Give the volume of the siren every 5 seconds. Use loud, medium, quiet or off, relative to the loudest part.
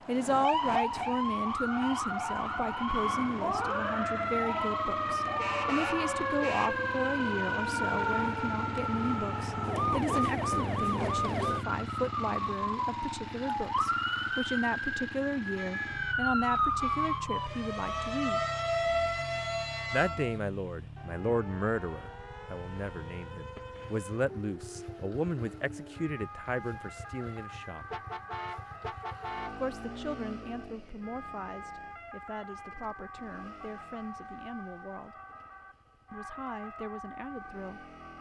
loud, loud, loud, loud, quiet, quiet, quiet, quiet.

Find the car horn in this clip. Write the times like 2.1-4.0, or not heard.
5.3-6.8, 15.6-17.2, 27.9-29.6.